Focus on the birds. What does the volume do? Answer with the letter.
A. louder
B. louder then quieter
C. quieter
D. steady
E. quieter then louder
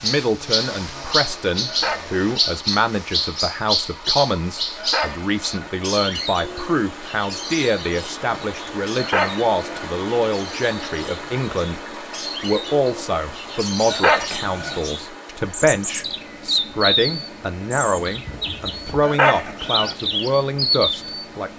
E.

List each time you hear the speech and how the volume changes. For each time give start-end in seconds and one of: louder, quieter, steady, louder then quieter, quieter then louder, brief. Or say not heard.
0.0-11.8 steady
12.4-21.5 steady.